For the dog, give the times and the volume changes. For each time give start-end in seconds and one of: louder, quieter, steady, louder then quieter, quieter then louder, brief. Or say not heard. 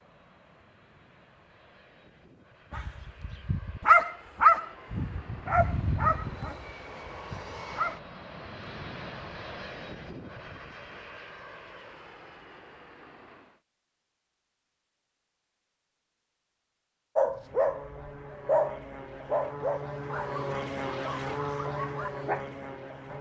2.8-8.0 quieter
17.1-22.4 quieter.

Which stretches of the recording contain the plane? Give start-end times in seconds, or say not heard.
0.0-13.6, 17.3-23.1.